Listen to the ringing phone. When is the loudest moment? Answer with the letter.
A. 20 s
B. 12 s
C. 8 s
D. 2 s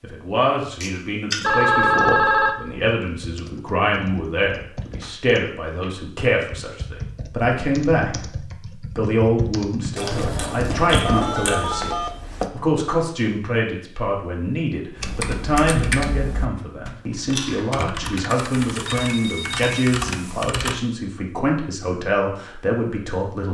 D.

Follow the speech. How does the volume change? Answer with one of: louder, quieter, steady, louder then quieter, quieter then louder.
steady.